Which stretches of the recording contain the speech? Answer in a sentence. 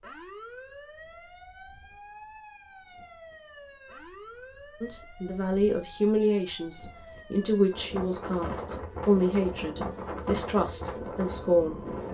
You can hear the speech from 4.8 to 11.8 s.